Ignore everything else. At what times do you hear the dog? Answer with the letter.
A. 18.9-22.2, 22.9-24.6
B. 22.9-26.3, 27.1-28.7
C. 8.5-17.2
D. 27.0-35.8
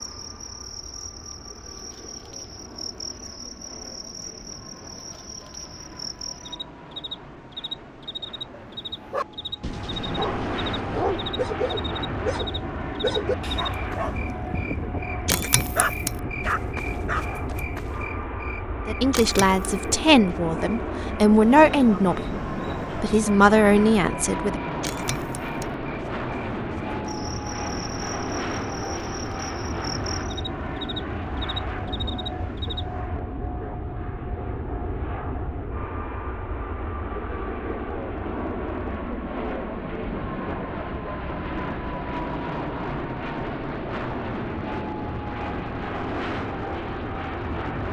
C.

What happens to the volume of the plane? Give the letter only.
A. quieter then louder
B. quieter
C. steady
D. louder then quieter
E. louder
E.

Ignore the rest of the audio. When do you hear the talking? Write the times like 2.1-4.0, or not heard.
18.9-22.2, 22.9-24.6.